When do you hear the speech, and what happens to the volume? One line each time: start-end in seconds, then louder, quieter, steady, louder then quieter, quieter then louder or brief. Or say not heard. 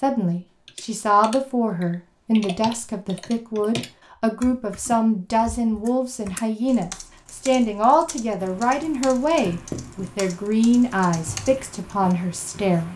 0.0-12.9 steady.